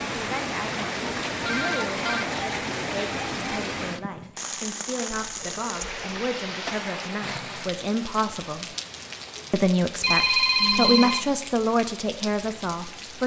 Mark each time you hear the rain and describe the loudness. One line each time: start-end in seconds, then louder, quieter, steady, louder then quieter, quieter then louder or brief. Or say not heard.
0.0-13.2 quieter.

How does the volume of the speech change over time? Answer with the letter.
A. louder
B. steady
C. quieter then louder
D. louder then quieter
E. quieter
A.